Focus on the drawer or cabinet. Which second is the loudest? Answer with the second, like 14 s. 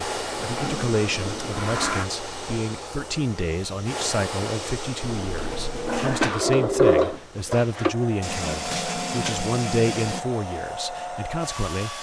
7 s.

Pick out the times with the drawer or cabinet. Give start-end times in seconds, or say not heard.
1.1-1.6, 6.2-8.0.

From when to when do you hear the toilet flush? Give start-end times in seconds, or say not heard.
0.3-2.1, 5.0-6.3, 8.2-10.2.